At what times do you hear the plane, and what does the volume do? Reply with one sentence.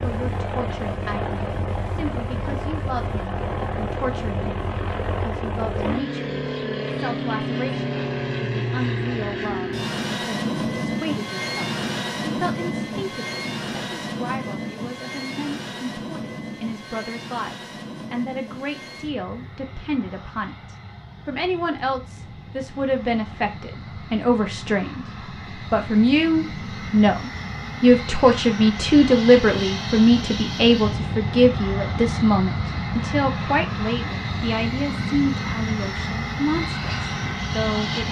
You can hear the plane from 0.0 to 38.0 s, getting quieter then louder.